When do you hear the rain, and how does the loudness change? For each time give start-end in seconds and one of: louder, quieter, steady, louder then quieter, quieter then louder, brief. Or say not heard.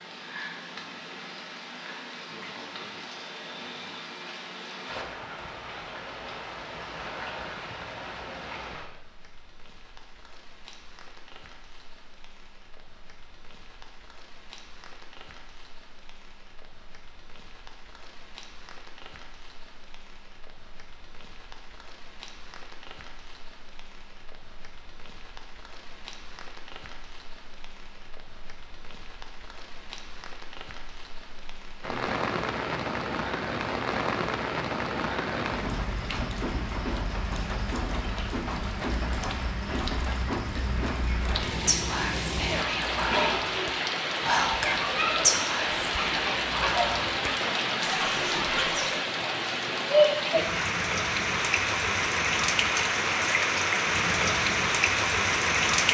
0.0-55.8 quieter then louder.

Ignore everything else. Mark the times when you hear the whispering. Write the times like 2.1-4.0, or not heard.
41.6-49.0.